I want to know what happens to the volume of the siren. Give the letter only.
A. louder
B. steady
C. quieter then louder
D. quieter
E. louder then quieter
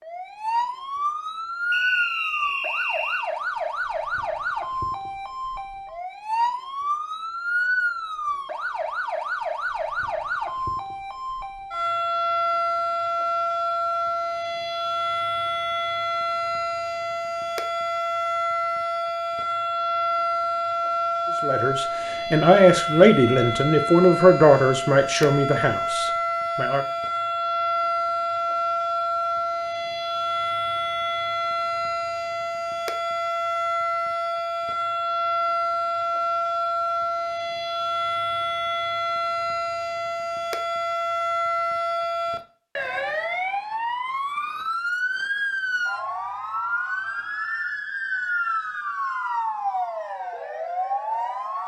B.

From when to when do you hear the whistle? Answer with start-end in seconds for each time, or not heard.
1.7-3.3.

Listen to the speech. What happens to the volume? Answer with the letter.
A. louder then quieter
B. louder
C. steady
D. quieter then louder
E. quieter
E.